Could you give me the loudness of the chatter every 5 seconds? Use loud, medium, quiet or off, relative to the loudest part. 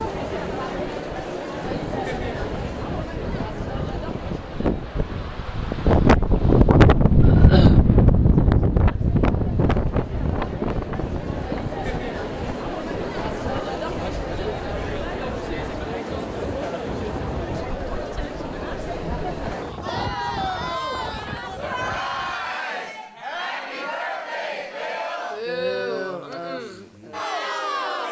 loud, quiet, loud, loud, loud, loud.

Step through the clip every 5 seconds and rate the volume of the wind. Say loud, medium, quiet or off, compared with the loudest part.
quiet, loud, quiet, quiet, quiet, off.